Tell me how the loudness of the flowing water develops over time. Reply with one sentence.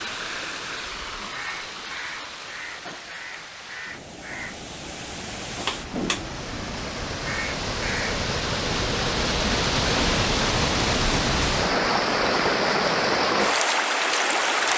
The volume of the flowing water goes up.